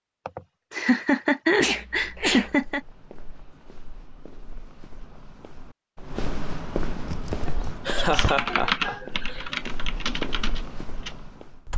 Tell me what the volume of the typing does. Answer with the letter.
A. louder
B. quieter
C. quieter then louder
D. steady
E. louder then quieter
E.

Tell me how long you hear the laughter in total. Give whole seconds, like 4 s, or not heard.
5 s.